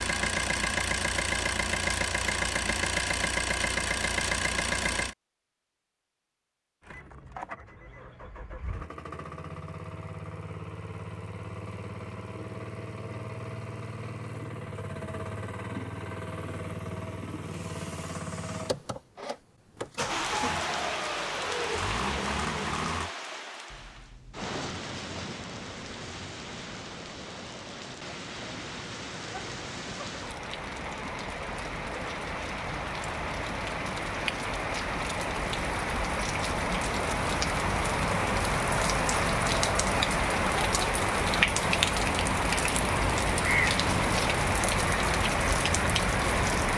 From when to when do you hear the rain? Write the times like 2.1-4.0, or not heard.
20.1-46.7.